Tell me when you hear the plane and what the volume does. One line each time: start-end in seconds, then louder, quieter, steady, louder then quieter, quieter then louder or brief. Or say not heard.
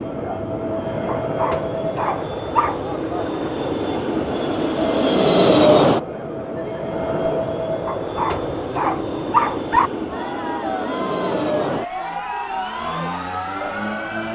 0.0-14.3 louder then quieter.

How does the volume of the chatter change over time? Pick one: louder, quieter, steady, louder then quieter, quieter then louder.
steady.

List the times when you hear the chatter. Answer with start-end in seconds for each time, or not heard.
0.0-14.3.